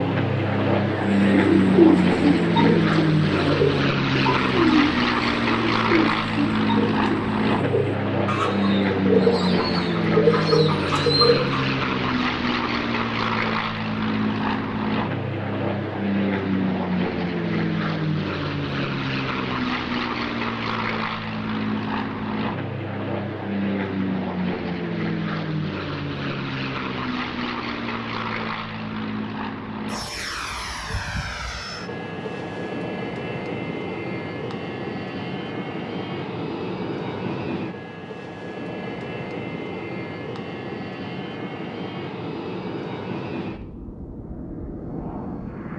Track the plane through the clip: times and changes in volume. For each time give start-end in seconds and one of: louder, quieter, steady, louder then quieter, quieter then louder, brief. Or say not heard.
0.0-45.7 quieter.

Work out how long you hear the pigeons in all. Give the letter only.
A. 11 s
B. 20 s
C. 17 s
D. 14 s
A.